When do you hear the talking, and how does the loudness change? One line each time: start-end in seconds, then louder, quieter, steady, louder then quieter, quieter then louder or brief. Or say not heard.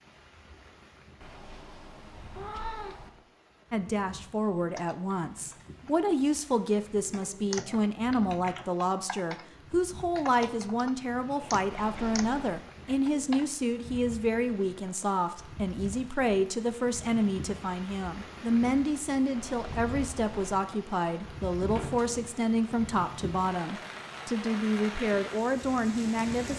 3.7-26.5 steady.